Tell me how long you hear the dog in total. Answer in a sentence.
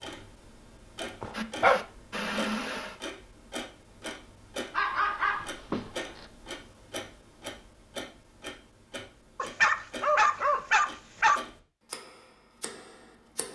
You can hear the dog for 5 seconds altogether.